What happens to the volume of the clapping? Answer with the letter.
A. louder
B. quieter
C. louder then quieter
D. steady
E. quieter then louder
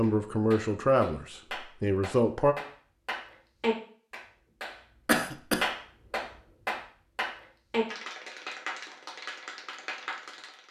C.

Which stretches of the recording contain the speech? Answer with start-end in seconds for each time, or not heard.
0.0-2.5.